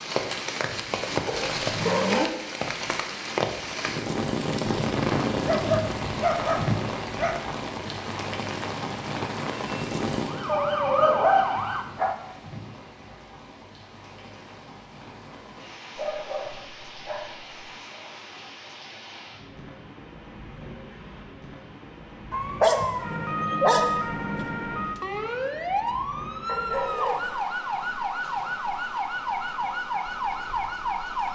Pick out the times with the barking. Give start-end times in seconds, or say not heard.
1.2-2.2, 5.5-7.3, 10.4-12.2, 15.9-17.6, 22.3-23.9, 26.4-27.4.